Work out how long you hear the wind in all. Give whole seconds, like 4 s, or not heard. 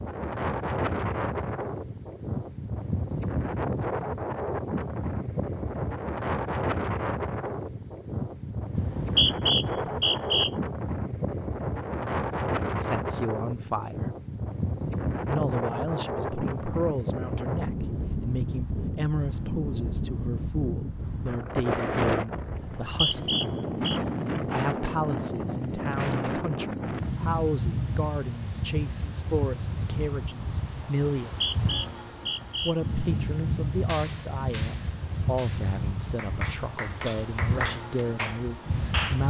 39 s.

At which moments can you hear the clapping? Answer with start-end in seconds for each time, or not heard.
33.9-39.2.